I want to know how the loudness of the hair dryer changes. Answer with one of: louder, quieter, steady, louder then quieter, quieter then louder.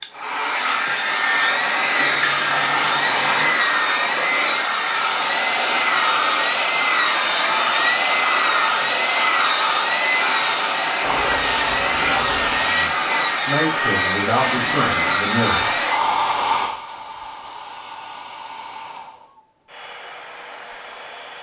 quieter.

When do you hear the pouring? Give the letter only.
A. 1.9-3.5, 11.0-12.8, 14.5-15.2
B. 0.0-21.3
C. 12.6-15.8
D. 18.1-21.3
A.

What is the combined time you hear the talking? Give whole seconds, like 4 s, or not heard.
3 s.